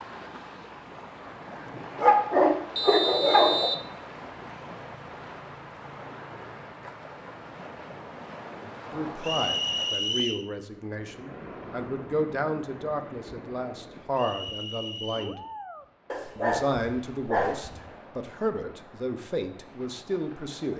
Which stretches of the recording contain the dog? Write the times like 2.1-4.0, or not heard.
1.9-3.7, 16.1-17.8.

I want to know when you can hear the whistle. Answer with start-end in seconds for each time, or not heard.
2.8-3.9, 9.2-10.4, 14.2-15.4.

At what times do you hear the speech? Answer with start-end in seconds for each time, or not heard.
8.9-15.4, 16.4-20.7.